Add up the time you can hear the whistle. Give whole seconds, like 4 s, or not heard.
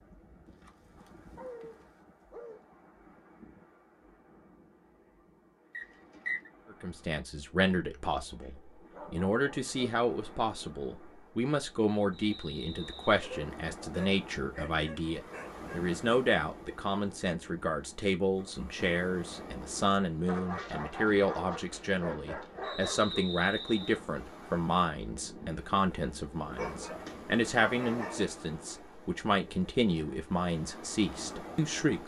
3 s.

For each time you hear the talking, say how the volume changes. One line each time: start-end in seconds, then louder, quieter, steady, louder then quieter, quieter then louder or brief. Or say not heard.
6.7-32.0 steady.